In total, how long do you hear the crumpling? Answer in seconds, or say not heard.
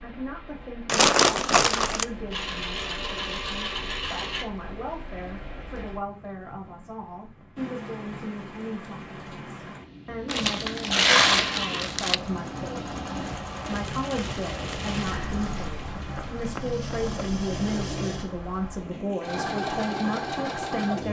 4 s.